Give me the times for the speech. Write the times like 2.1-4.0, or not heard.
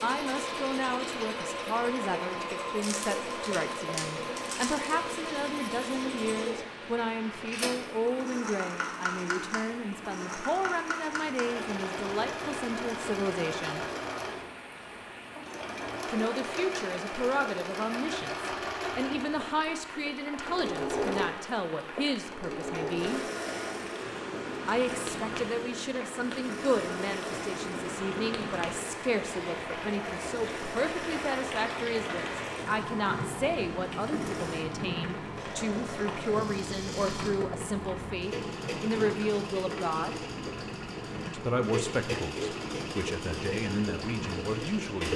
0.0-13.8, 16.1-23.2, 24.6-40.2, 41.2-45.1.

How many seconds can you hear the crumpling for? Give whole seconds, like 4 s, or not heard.
2 s.